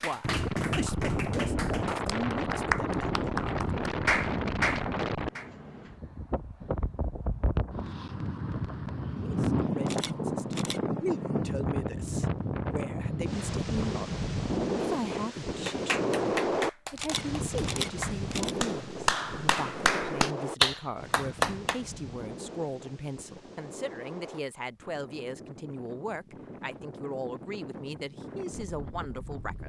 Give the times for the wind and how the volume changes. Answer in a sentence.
You can hear the wind from 0.2 to 29.6 s, getting quieter.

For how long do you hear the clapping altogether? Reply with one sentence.
The clapping can be heard for 12 seconds in total.